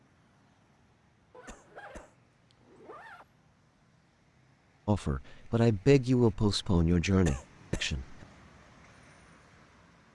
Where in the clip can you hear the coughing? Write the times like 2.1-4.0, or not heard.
1.4-2.1, 7.2-7.9.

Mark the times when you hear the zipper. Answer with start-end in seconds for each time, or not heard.
1.3-3.2.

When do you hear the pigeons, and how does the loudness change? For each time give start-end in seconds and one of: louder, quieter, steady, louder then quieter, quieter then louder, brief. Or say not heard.
not heard.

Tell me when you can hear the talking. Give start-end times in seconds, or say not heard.
4.8-8.2.